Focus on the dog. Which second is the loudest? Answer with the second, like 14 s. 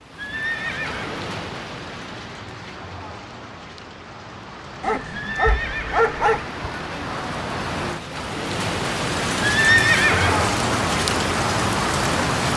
6 s.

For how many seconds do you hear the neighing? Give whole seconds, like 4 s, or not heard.
3 s.